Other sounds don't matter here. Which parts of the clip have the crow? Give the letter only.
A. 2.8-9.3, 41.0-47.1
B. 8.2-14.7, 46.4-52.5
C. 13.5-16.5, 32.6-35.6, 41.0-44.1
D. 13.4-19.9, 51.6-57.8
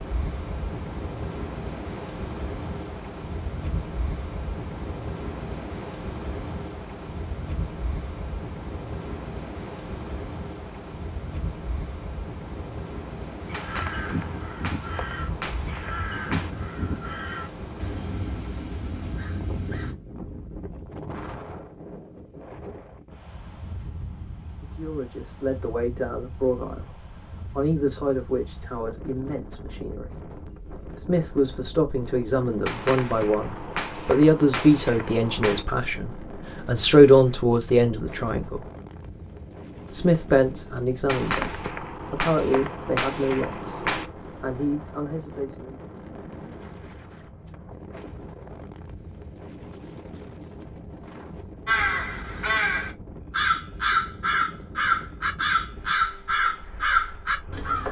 D.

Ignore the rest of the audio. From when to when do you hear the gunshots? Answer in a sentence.
You can hear the gunshots from 13.5 to 16.5 s, from 32.6 to 35.6 s and from 41.0 to 44.1 s.